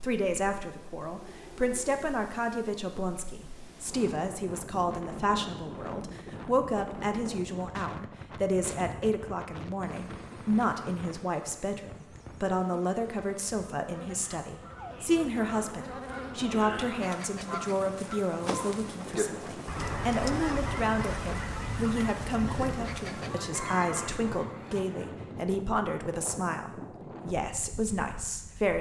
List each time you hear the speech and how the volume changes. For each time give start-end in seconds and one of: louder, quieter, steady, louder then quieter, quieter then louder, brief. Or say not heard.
0.0-28.7 steady.